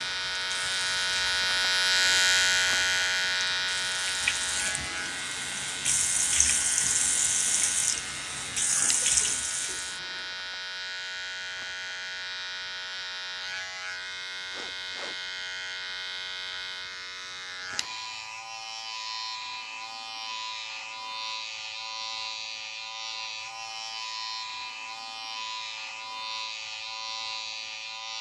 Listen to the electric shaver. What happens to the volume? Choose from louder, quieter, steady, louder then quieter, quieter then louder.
quieter.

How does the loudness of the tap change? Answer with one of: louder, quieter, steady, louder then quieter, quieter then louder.
louder.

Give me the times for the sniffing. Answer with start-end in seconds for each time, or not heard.
14.5-15.2.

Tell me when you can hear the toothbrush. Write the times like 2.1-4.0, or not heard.
not heard.